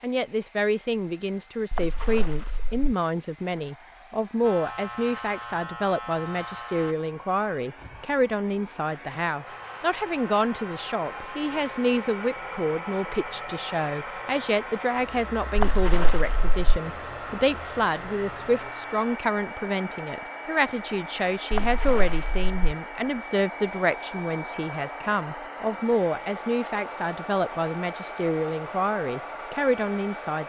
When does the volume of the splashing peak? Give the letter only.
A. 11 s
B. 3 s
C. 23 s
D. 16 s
D.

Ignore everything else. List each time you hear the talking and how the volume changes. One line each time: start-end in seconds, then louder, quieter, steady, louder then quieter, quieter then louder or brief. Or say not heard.
0.0-30.4 steady.